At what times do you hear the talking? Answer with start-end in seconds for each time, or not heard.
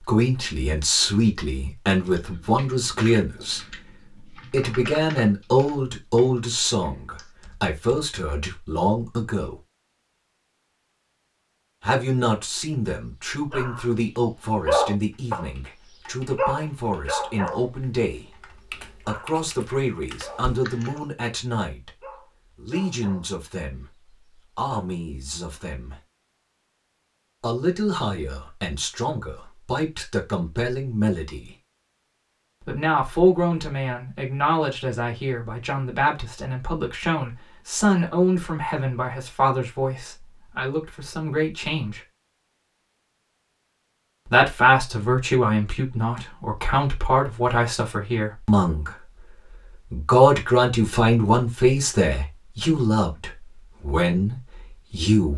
0.0-9.6, 11.8-25.9, 27.4-31.5, 32.6-42.0, 44.2-49.2, 49.9-55.3.